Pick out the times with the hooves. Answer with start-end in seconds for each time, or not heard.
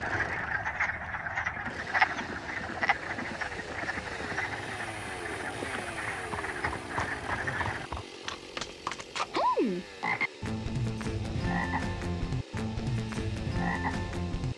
1.4-8.2.